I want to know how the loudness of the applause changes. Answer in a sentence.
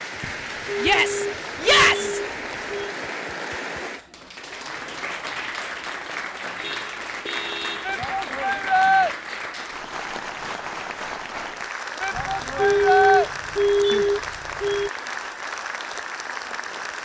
The loudness of the applause stays about the same.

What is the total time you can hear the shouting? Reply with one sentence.
The shouting can be heard for 4 seconds in total.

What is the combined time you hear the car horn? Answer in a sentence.
You can hear the car horn for 7 seconds altogether.